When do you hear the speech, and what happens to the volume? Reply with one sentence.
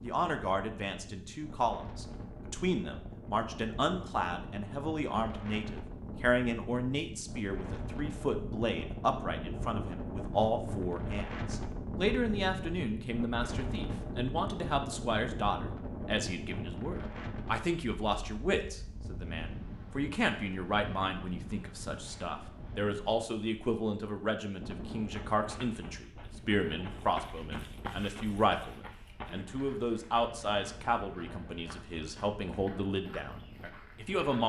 You can hear the speech from 0.0 to 34.4 s, at a steady volume.